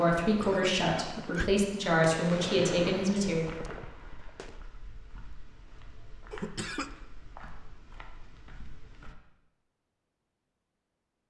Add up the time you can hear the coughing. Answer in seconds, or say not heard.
2 s.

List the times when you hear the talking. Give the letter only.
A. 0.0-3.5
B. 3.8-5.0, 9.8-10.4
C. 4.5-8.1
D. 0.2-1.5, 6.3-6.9
A.